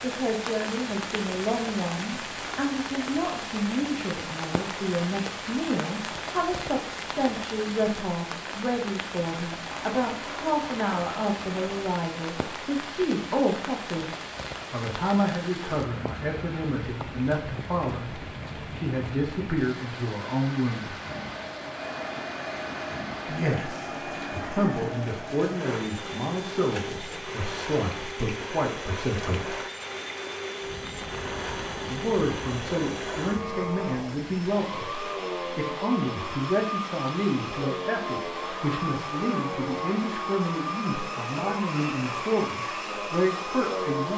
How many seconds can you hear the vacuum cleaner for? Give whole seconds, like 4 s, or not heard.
25 s.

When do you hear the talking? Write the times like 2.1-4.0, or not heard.
0.0-14.1, 14.7-20.9, 23.2-29.6, 31.9-44.1.